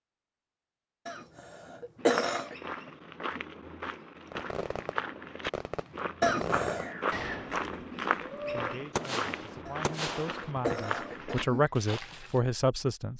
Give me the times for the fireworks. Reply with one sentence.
You can hear the fireworks from 4.3 to 11.7 s.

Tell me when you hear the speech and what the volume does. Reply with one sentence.
You can hear the speech from 8.5 to 13.1 s, getting louder.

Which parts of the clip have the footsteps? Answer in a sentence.
You can hear the footsteps from 1.9 to 12.4 s.